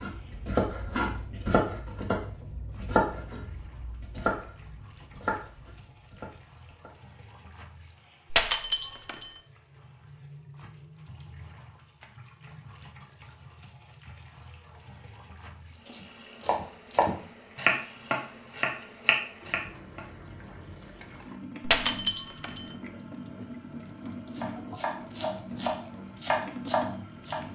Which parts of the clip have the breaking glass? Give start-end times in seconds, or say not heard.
8.3-9.3, 21.6-22.7.